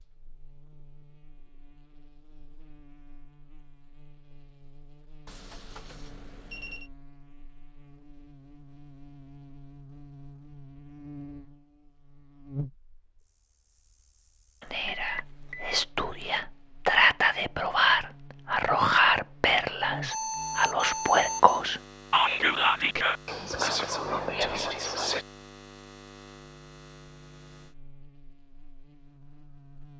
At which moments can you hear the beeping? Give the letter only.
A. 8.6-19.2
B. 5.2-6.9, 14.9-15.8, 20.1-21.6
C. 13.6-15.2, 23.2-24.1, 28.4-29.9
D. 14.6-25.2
B.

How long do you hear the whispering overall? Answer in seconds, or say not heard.
11 s.